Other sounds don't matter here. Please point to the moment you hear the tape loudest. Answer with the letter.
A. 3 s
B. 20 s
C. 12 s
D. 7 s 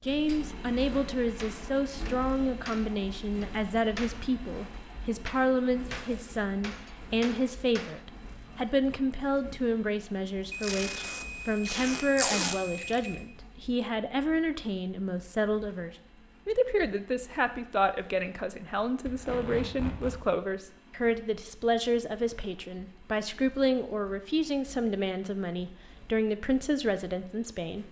C.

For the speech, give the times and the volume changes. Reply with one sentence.
You can hear the speech from 0.1 to 27.8 s, at a steady volume.